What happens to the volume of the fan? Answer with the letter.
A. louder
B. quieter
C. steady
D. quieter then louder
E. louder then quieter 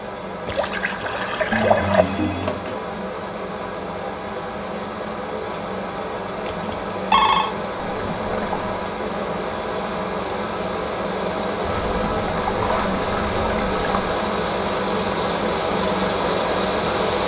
A.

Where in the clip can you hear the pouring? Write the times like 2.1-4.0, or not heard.
0.5-2.0, 7.8-8.8, 11.8-14.2.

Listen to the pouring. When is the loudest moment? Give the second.
2 s.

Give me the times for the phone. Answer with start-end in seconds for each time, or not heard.
1.5-2.9, 6.5-7.5, 11.6-14.1.